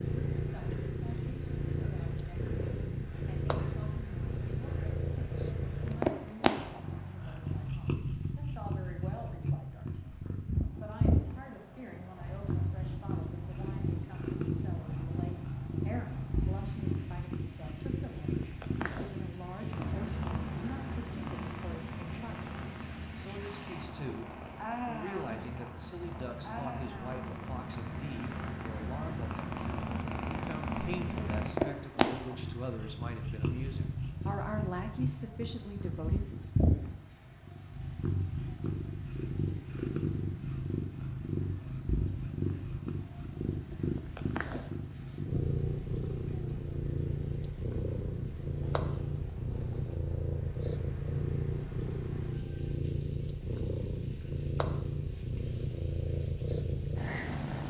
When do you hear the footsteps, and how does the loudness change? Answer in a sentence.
You can't hear the footsteps here.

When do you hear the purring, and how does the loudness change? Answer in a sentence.
You can hear the purring from 0.0 to 57.6 s, at a steady volume.